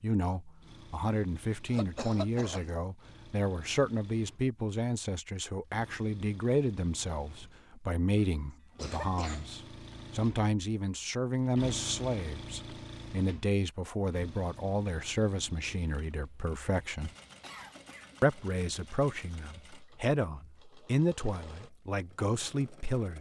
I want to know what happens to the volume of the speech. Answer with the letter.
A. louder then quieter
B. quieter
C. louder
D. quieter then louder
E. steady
E.